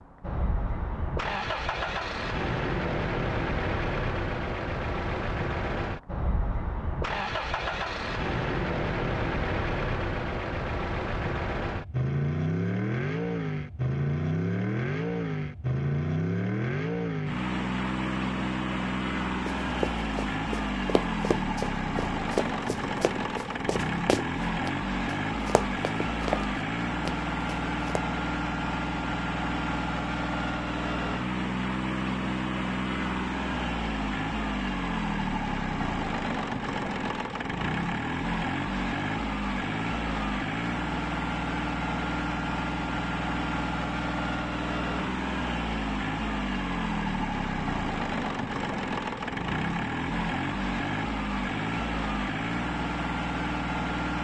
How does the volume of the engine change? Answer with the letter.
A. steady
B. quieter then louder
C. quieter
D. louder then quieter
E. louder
A.